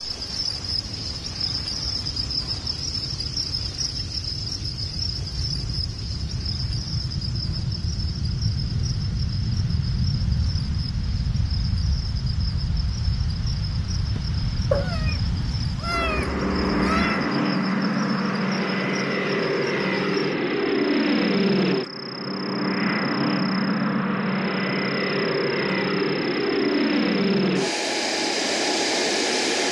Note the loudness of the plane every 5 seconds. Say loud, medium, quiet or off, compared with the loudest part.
quiet, medium, medium, loud, loud, loud.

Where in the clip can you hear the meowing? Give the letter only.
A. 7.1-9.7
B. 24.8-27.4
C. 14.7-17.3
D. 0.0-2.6
C.